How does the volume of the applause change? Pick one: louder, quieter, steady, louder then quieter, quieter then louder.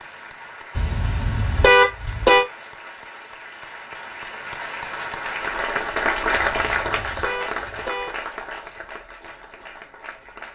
louder then quieter.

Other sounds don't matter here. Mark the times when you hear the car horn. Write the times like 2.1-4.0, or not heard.
0.8-2.5, 6.3-8.2.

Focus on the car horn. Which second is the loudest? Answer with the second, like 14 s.
2 s.